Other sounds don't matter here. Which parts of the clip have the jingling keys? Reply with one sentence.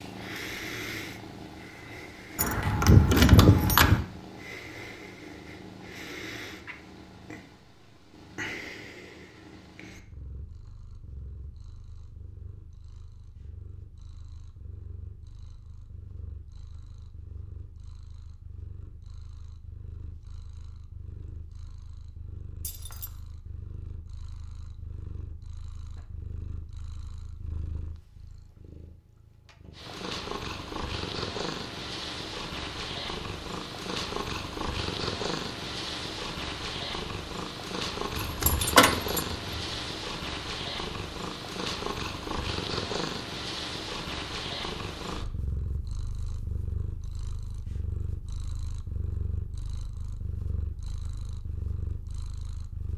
The jingling keys can be heard from 2.4 to 4.0 s, from 22.6 to 23.1 s and from 38.1 to 39.8 s.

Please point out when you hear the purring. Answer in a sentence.
The purring can be heard from 0.0 to 52.9 s.